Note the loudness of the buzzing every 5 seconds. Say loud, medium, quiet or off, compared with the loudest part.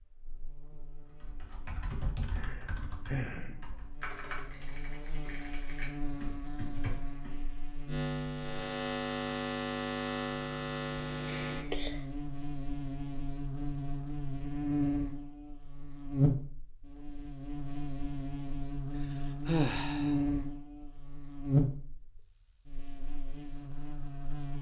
quiet, loud, loud, loud, loud.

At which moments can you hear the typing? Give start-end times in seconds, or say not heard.
1.1-7.5.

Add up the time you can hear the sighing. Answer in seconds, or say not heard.
3 s.